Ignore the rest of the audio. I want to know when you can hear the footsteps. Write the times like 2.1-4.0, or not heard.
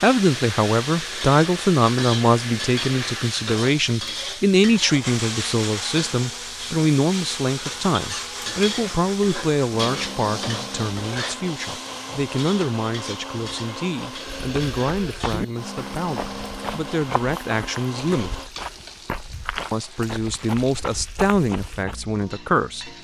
14.3-21.9.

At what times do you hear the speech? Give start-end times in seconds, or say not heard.
0.0-18.5, 19.7-22.9.